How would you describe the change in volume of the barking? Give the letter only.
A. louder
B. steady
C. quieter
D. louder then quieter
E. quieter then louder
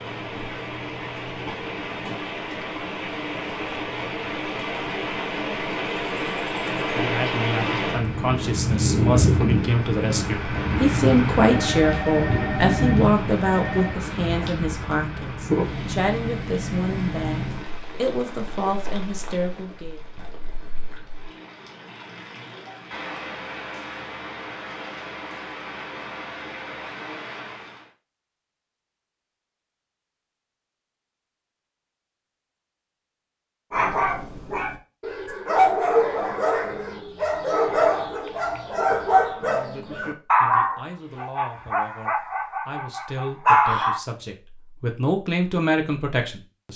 B.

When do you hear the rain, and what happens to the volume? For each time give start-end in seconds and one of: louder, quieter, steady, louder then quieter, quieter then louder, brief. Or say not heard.
0.0-27.9 louder then quieter.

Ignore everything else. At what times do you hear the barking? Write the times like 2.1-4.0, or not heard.
33.7-44.0.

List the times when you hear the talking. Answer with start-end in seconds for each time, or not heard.
6.7-20.0, 40.2-46.7.